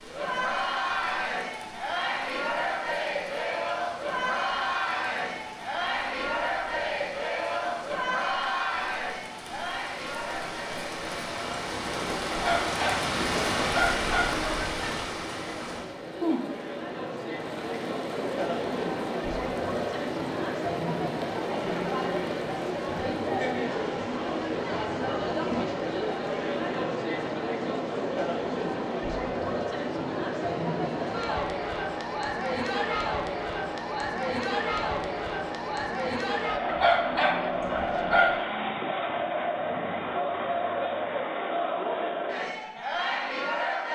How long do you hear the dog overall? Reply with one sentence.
You can hear the dog for 4 seconds altogether.